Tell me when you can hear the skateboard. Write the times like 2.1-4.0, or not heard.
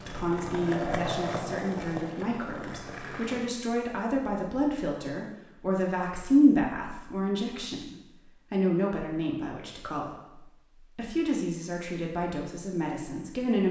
0.0-3.5.